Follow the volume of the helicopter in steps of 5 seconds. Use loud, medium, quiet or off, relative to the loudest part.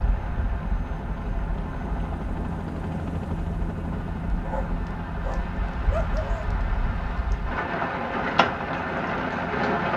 loud, medium.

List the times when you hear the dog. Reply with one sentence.
You can hear the dog from 4.4 to 6.5 s.